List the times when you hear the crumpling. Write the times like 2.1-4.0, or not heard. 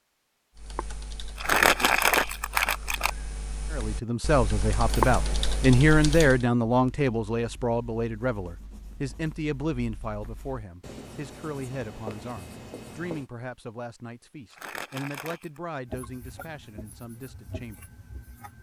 1.4-3.1, 14.5-15.6.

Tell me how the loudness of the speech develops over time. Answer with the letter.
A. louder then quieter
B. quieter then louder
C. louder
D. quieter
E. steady
D.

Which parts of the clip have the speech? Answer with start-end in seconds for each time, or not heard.
3.7-17.8.